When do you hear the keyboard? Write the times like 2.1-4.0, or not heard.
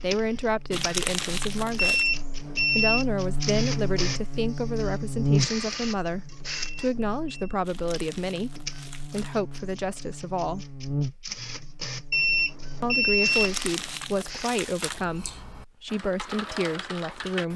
14.8-17.5.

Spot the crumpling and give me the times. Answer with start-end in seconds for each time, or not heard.
0.7-2.0, 7.6-9.4, 13.3-15.1.